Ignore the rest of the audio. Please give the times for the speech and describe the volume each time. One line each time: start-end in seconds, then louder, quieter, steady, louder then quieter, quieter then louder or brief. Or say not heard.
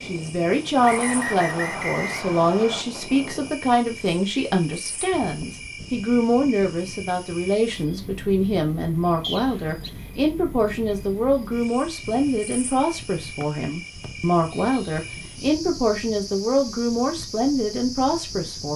0.0-18.7 steady.